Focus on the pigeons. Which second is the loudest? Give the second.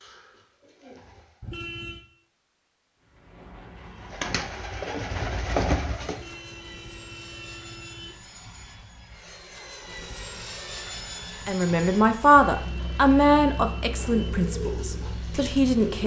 6 s.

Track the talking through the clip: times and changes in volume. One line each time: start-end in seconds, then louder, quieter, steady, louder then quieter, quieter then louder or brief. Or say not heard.
11.4-16.0 quieter.